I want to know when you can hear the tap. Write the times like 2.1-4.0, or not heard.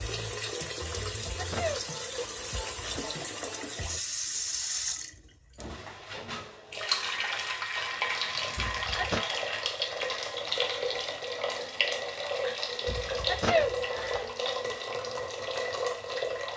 0.0-16.5.